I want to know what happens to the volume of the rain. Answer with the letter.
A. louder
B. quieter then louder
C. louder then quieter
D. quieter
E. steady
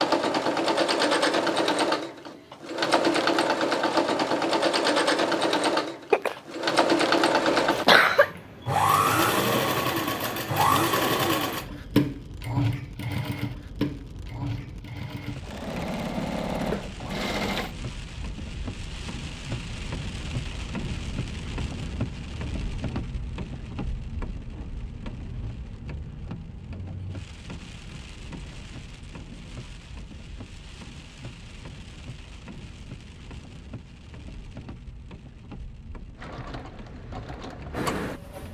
C.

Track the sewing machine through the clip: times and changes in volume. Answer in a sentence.
The sewing machine can be heard from 0.0 to 17.7 s, getting quieter; and briefly from 36.1 to 38.4 s.